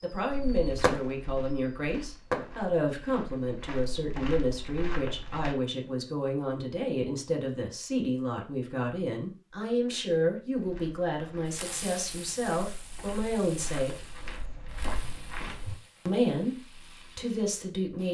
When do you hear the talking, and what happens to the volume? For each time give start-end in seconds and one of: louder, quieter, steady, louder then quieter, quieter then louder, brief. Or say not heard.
0.0-14.1 steady
16.1-18.1 brief.